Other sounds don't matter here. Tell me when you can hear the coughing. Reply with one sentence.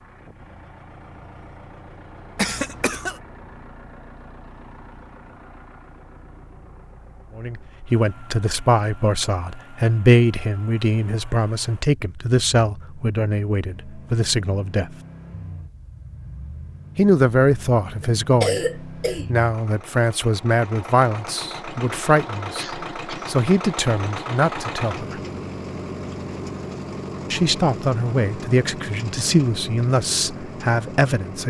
The coughing can be heard from 2.4 to 3.2 s, from 18.0 to 19.2 s and from 22.6 to 23.4 s.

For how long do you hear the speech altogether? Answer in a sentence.
You can hear the speech for 20 seconds altogether.